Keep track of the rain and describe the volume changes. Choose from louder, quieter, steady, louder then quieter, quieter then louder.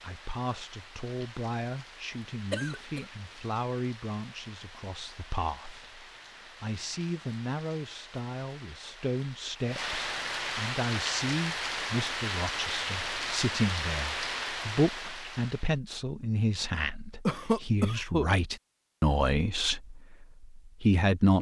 louder.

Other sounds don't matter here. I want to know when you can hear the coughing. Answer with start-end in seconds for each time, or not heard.
2.5-3.0, 17.2-18.2.